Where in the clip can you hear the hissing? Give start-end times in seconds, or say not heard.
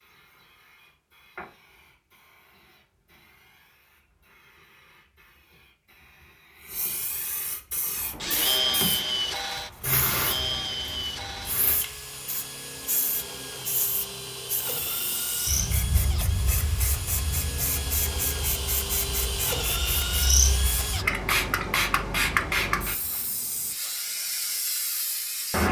0.0-25.6.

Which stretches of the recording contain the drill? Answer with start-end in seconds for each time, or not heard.
8.0-21.1.